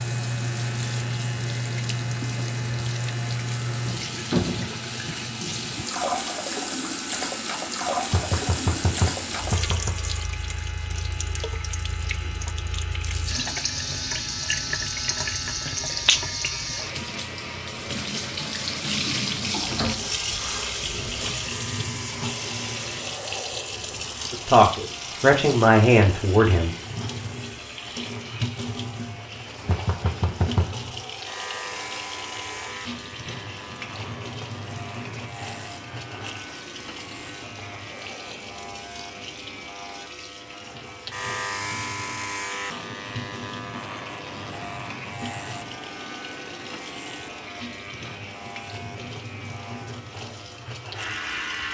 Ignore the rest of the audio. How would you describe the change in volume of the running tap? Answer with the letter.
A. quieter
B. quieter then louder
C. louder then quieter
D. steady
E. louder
A.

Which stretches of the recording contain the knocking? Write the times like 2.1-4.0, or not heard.
8.1-9.9, 29.6-30.9.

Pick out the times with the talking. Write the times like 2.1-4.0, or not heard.
24.3-26.8.